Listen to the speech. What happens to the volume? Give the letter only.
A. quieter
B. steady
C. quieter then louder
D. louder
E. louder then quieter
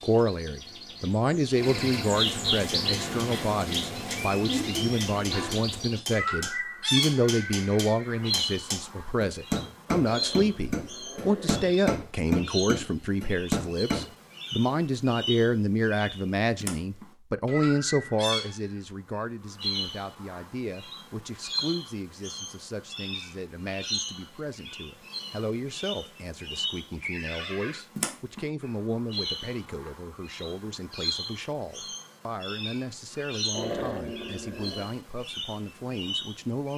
A.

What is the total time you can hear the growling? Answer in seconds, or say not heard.
3 s.